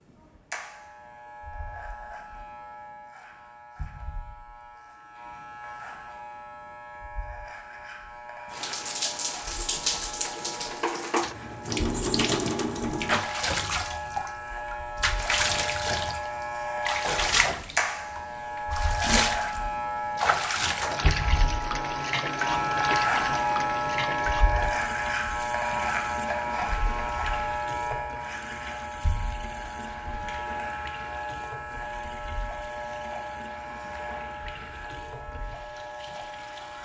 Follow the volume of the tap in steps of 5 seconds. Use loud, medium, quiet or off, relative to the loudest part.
off, loud, loud, loud, loud, quiet, quiet, quiet.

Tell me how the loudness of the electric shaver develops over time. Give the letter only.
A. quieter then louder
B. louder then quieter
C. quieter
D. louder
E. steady
B.